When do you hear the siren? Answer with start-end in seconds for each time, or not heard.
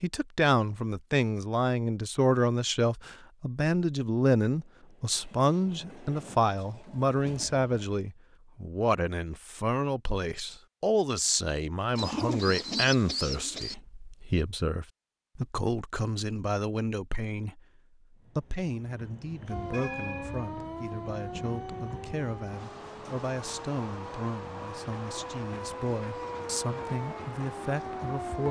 19.5-28.4.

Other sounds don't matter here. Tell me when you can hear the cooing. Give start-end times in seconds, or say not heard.
11.9-13.8.